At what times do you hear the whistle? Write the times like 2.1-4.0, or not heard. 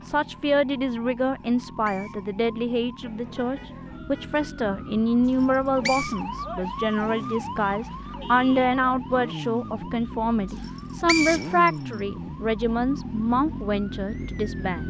1.4-2.2, 5.4-6.2, 10.7-11.7.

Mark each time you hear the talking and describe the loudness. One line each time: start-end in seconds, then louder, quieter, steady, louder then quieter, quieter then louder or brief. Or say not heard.
0.0-14.8 steady.